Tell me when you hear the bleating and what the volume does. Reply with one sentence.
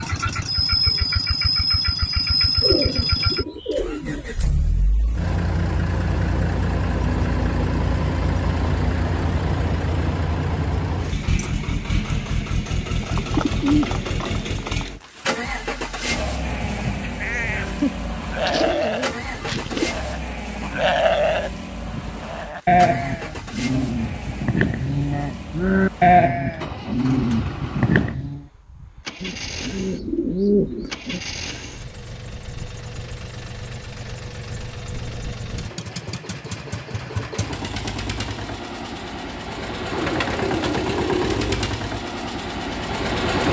The bleating can be heard from 16.4 to 28.4 s, getting louder.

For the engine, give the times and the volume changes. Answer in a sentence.
The engine can be heard from 0.0 to 43.4 s, getting quieter then louder.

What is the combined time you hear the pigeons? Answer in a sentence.
You can hear the pigeons for 9 seconds altogether.